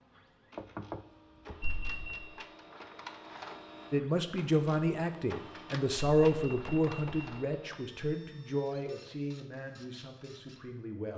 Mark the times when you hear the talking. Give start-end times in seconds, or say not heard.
3.9-11.1.